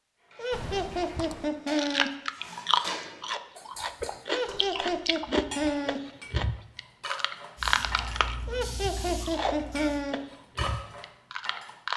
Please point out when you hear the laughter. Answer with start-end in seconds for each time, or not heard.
0.3-2.1, 4.2-6.0, 8.4-10.2.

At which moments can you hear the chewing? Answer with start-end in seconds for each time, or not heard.
0.5-11.9.